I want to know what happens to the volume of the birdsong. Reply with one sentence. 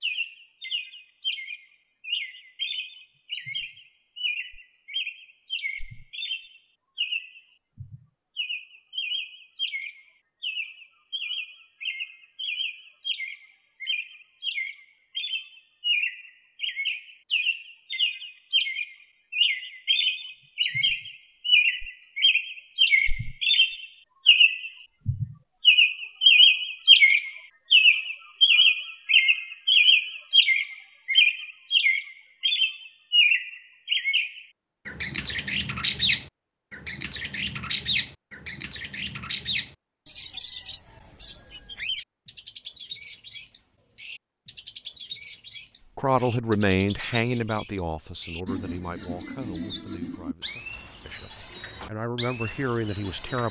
The loudness of the birdsong goes up, then down.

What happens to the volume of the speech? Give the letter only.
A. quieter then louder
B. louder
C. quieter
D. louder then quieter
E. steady
A.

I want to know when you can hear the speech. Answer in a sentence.
The speech can be heard from 46.0 to 53.4 s.